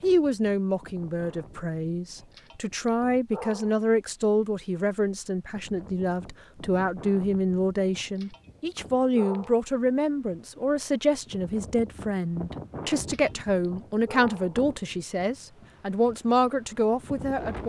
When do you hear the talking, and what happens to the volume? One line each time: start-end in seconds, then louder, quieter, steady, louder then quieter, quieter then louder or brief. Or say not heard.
0.0-17.6 steady.